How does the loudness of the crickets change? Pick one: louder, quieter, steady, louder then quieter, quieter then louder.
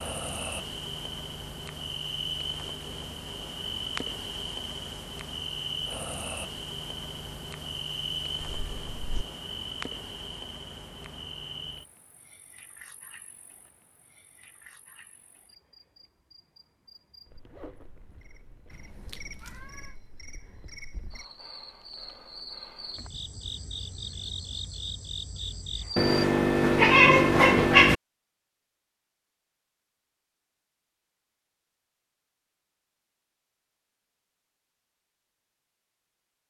quieter then louder.